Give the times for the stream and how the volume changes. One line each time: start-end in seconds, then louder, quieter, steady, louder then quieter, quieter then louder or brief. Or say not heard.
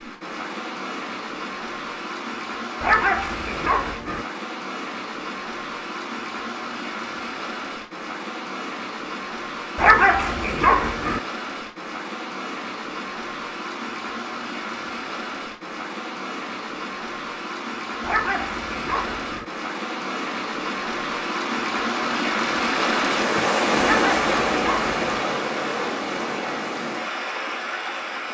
0.0-28.2 louder.